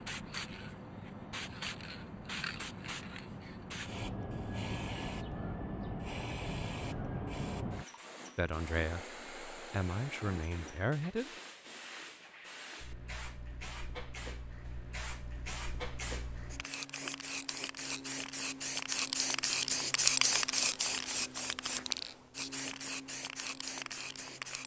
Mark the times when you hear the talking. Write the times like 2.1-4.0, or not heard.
8.3-11.3.